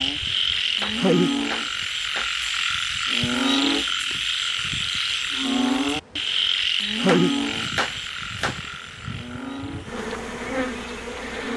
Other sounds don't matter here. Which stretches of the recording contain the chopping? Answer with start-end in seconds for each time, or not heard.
0.8-2.4, 7.0-8.6.